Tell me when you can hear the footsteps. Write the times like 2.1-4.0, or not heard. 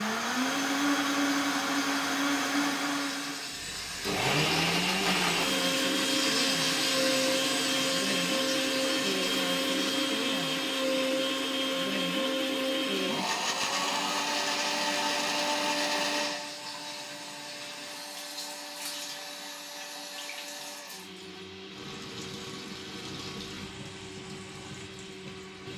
not heard.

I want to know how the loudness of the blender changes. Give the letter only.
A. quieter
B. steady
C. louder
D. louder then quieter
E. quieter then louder
A.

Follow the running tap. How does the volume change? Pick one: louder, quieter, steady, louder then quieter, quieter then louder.
quieter.